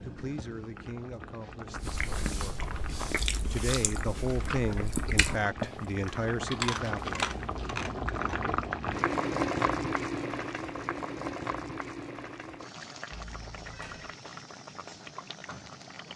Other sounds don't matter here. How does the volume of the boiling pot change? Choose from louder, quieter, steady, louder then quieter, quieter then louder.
louder then quieter.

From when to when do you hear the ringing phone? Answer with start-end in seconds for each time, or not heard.
13.2-14.2.